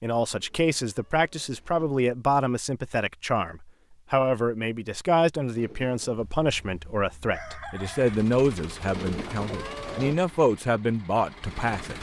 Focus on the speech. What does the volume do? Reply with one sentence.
The loudness of the speech stays about the same.